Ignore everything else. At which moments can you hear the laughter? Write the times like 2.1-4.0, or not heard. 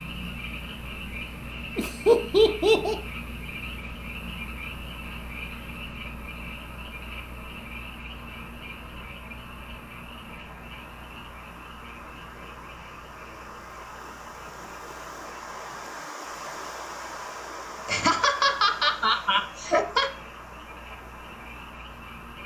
1.8-3.0, 17.9-20.1.